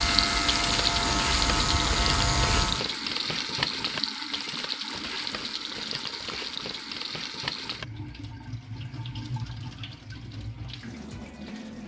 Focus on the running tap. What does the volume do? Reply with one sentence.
The volume of the running tap goes down.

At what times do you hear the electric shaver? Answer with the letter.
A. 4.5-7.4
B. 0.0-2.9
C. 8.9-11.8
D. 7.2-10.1
B.